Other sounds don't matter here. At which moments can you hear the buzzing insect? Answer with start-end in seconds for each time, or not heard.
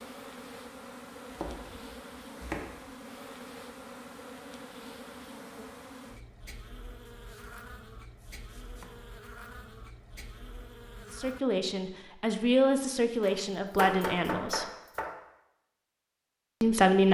0.0-11.4.